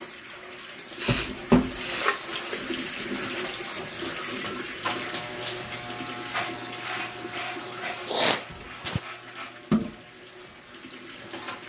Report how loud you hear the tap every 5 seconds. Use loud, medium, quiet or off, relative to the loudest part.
loud, medium, quiet.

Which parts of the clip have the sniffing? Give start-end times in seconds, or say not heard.
0.9-2.2, 8.1-9.0.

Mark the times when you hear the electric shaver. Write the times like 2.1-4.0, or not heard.
4.8-11.6.